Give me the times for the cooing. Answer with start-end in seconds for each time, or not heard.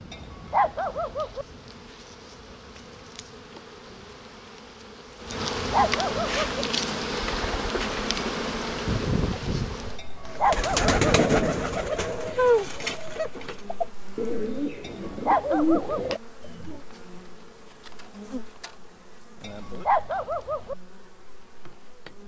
6.2-16.8.